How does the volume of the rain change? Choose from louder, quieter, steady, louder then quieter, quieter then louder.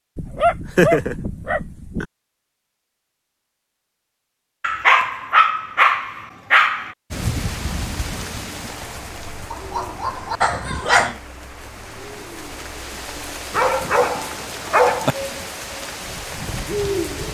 quieter then louder.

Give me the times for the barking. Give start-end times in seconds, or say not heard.
0.1-2.0, 4.6-7.0, 9.5-11.2, 13.5-15.2.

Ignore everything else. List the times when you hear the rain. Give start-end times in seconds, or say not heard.
7.1-17.2.